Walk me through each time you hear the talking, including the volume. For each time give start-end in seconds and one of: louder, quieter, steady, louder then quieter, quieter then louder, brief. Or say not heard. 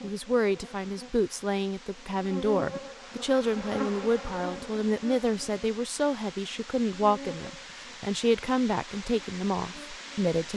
0.0-10.5 steady.